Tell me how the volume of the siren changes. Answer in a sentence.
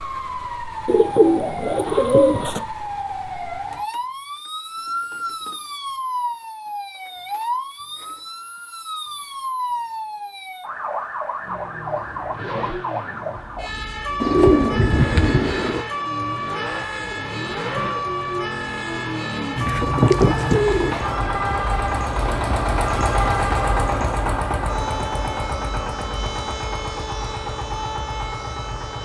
The volume of the siren stays about the same.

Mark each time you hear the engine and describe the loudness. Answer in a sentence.
The engine can be heard from 11.4 to 29.0 s, getting louder then quieter.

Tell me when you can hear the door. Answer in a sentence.
The door can't be heard in this clip.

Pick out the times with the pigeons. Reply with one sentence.
The pigeons can be heard from 0.8 to 2.6 s, from 14.2 to 15.8 s and from 19.6 to 21.1 s.